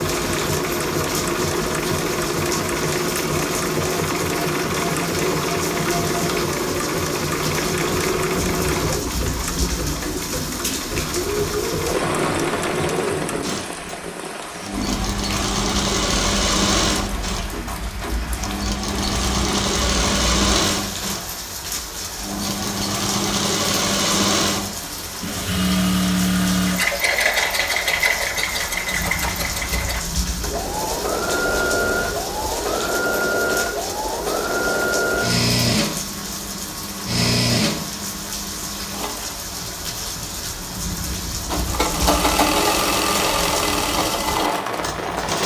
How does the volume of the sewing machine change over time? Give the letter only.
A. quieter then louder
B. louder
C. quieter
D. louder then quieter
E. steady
E.